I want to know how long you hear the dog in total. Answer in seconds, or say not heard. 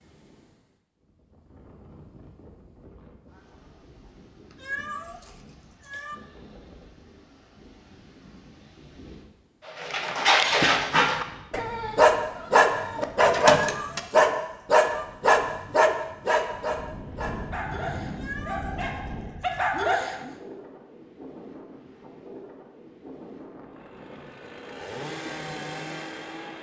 11 s.